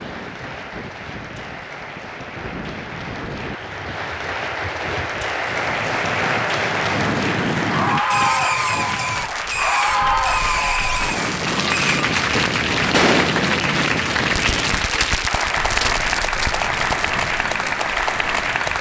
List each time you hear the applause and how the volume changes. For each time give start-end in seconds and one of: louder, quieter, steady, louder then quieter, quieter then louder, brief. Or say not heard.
0.0-18.7 louder.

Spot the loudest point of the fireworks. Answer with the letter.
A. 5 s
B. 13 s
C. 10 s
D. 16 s
B.